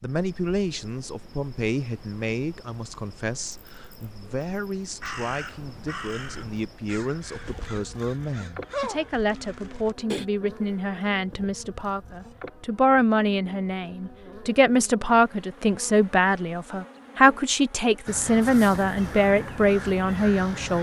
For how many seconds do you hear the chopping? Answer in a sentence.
You can't hear the chopping here.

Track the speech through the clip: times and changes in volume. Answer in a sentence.
The speech can be heard from 0.0 to 20.7 s, getting louder.